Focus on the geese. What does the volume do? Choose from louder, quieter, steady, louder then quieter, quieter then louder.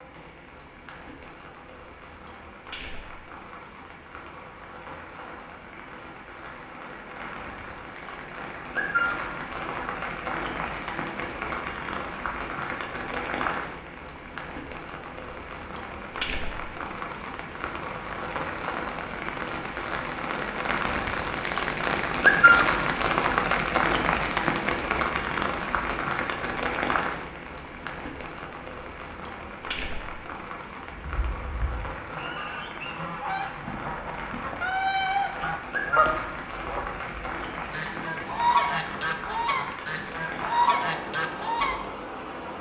louder.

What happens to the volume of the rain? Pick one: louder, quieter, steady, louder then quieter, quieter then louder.
louder then quieter.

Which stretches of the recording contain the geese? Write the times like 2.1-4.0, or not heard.
30.9-41.8.